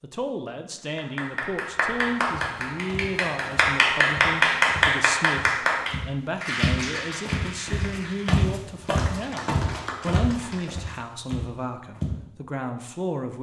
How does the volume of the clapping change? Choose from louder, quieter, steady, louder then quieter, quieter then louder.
louder then quieter.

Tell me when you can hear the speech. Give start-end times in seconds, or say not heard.
0.0-13.3.